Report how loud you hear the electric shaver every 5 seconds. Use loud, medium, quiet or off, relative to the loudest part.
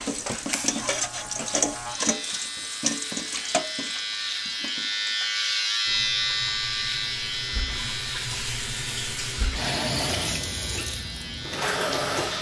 medium, loud, medium.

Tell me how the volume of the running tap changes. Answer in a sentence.
The loudness of the running tap goes down, then up.